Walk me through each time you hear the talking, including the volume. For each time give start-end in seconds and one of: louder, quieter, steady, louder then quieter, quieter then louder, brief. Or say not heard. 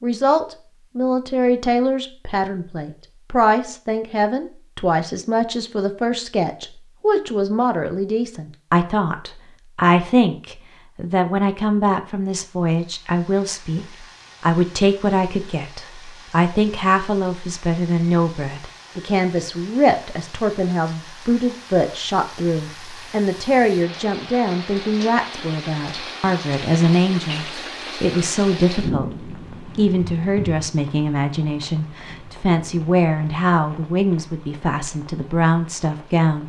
0.0-36.4 steady.